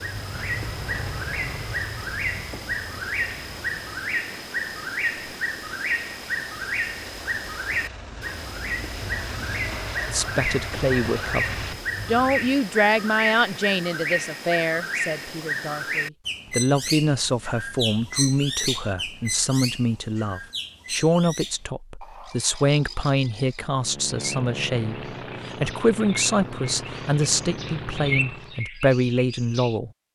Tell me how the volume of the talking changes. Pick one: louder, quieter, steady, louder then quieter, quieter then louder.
steady.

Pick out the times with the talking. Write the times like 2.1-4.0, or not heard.
10.1-29.9.